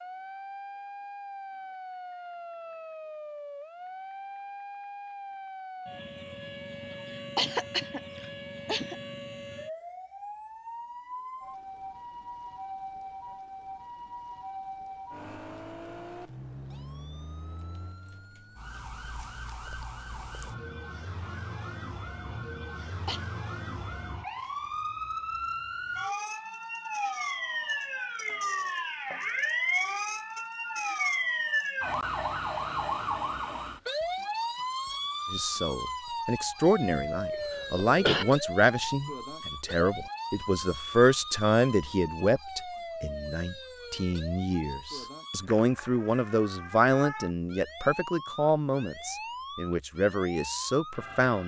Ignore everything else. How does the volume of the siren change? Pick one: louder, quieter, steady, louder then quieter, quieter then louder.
louder then quieter.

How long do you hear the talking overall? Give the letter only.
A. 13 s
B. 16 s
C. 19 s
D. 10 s
B.